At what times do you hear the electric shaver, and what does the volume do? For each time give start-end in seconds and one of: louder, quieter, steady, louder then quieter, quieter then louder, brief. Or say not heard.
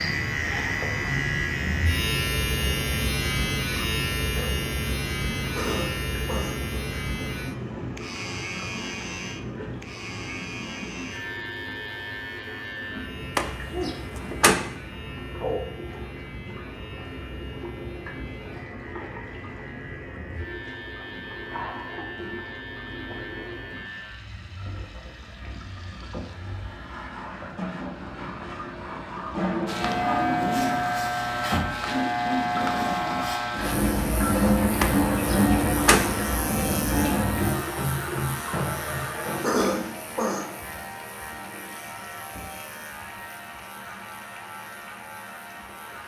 0.0-26.9 quieter
29.6-46.0 quieter.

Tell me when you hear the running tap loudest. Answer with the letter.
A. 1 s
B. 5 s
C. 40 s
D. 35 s
D.